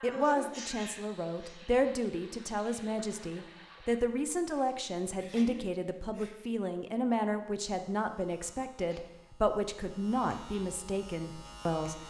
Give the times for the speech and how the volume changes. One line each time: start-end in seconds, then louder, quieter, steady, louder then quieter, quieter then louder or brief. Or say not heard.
0.0-12.0 steady.